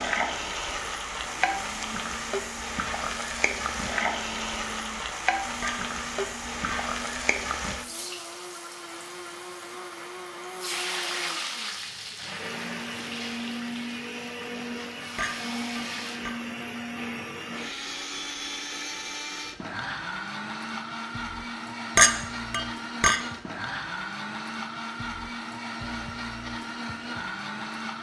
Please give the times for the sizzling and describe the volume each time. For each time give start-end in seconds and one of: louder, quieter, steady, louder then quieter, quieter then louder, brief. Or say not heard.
0.0-16.2 quieter.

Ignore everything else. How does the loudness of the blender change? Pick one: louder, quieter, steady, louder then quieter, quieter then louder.
louder.